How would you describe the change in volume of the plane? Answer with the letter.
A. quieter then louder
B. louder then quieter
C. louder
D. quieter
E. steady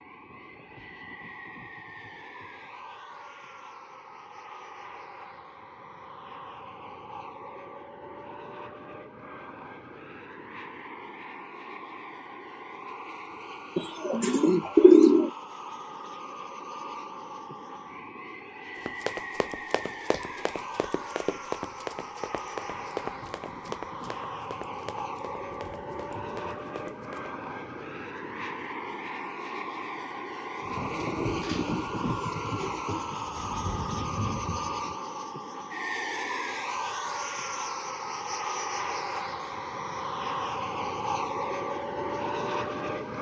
C.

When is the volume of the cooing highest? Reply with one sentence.
The volume of the cooing peaks at 15 seconds.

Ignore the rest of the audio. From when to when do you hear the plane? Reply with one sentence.
The plane can be heard from 0.0 to 43.1 s.